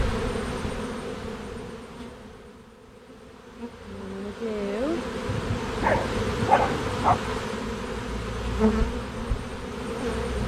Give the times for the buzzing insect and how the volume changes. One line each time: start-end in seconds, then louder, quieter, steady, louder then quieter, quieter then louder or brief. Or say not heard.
0.0-10.4 quieter then louder.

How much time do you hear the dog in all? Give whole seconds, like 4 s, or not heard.
2 s.